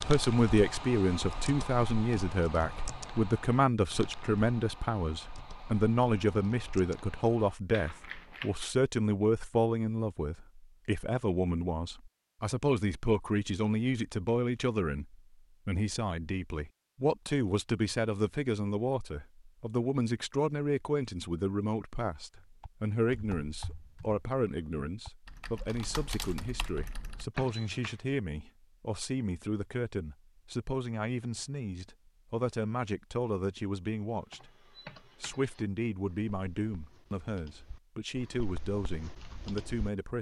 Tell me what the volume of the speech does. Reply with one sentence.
The loudness of the speech goes down.